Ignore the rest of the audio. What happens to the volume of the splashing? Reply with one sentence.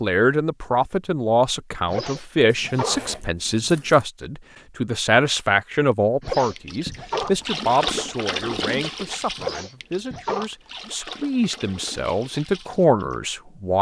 The volume of the splashing goes down.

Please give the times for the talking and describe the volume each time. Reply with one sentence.
The talking can be heard from 0.0 to 13.7 s, getting quieter then louder.